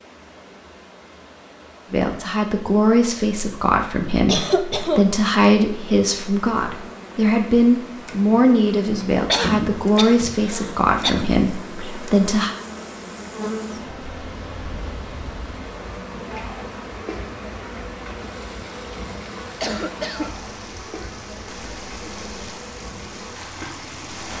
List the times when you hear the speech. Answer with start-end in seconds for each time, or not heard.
1.9-12.6.